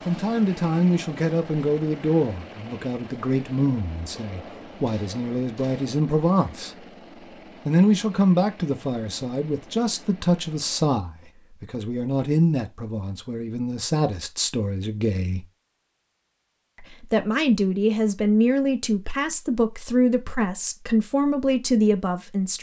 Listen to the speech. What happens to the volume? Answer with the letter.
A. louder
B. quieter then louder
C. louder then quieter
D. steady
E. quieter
D.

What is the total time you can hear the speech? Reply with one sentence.
You can hear the speech for 20 seconds altogether.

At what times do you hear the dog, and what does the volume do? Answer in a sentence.
The dog can't be heard in this clip.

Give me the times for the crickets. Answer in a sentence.
The crickets can't be heard in this clip.